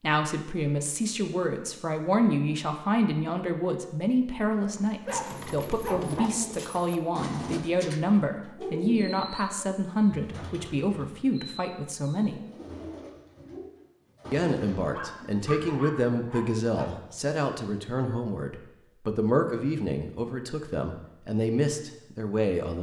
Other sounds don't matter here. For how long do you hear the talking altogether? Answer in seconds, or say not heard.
21 s.